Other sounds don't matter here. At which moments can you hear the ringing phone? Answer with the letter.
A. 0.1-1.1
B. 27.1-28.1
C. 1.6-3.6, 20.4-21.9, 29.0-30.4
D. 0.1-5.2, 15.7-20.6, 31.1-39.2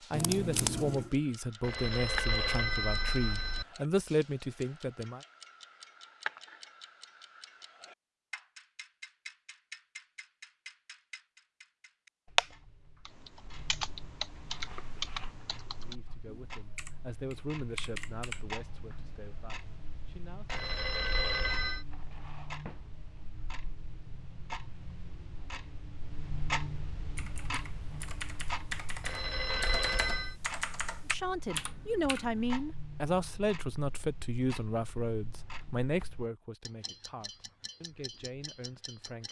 C.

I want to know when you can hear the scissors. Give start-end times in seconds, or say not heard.
0.1-1.1.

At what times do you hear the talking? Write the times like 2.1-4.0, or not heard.
0.1-5.2, 15.7-20.6, 31.1-39.2.